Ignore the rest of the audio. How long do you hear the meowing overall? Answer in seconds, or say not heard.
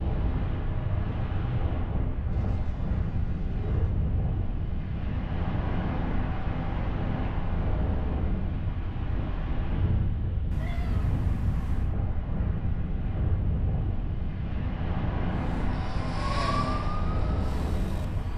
3 s.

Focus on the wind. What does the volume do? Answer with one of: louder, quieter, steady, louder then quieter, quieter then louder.
steady.